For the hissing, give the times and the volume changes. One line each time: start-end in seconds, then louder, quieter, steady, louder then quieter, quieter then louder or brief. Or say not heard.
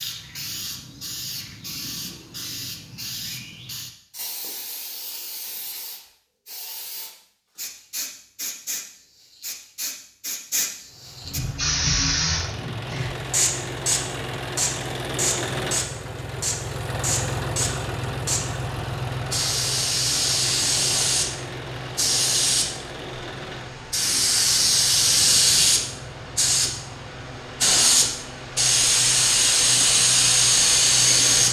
0.0-31.4 louder.